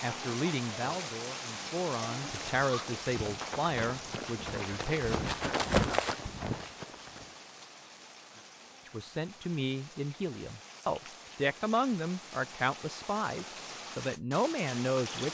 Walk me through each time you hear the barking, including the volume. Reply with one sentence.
You can't hear the barking here.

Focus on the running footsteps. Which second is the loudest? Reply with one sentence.
The volume of the running footsteps peaks at 6 seconds.